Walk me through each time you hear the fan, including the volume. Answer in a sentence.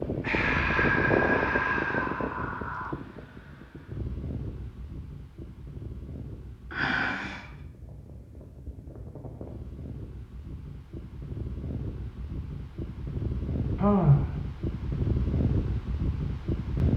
The fan can be heard from 0.0 to 16.9 s, getting quieter then louder.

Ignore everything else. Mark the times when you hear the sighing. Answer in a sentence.
The sighing can be heard from 0.2 to 3.0 s, from 6.7 to 7.5 s and from 13.8 to 14.3 s.